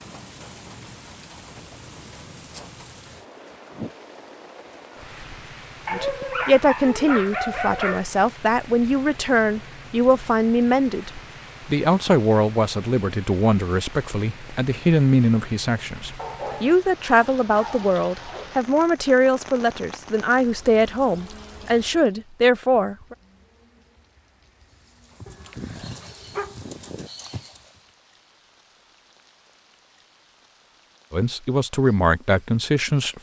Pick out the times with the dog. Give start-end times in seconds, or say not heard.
5.8-8.1, 16.1-18.5, 25.2-27.1.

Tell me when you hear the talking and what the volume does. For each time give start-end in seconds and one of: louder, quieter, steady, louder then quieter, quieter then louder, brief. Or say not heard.
5.9-11.1 quieter then louder
11.7-23.1 steady
31.1-33.1 brief.